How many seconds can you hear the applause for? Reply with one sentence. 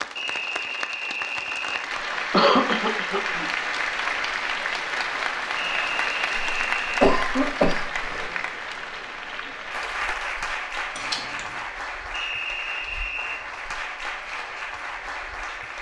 The applause can be heard for 16 seconds in total.